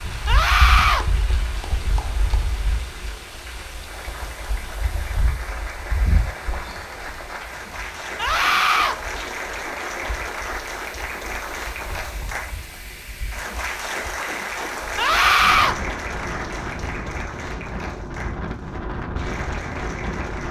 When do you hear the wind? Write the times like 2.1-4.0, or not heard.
0.0-20.4.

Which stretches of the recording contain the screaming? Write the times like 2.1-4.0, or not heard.
0.2-1.1, 8.2-8.9, 14.9-15.8.